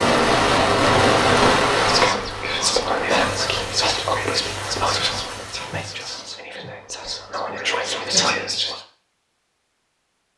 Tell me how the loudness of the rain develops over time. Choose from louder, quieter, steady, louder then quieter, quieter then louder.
quieter.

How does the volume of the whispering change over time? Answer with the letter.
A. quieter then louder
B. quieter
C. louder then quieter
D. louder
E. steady
A.